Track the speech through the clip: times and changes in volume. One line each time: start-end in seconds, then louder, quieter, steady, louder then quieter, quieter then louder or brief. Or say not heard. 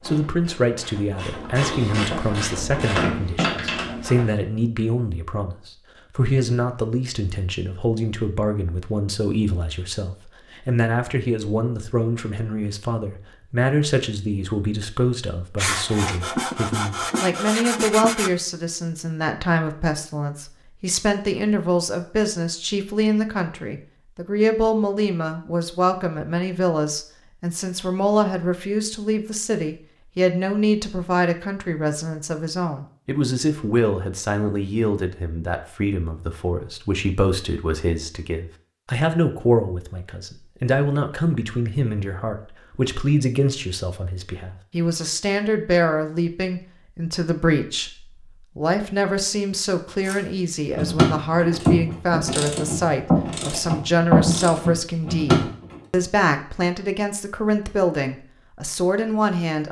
0.1-59.6 steady.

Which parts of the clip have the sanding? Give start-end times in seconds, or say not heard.
15.6-18.3.